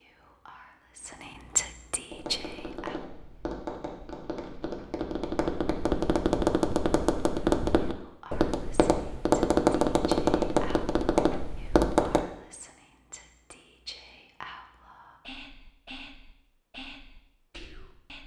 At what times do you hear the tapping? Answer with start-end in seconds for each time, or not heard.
2.1-12.2.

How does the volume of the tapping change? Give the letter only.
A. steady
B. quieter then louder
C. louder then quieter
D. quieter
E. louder
E.